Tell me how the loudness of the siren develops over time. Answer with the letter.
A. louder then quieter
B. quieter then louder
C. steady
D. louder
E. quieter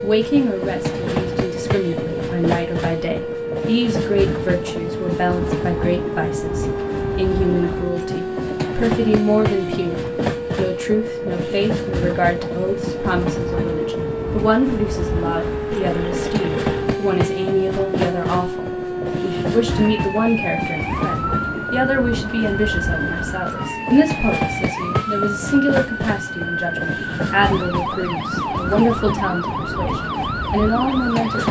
C.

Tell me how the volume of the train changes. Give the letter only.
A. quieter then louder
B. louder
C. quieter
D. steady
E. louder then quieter
D.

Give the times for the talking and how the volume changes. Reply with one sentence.
The talking can be heard from 0.0 to 31.4 s, at a steady volume.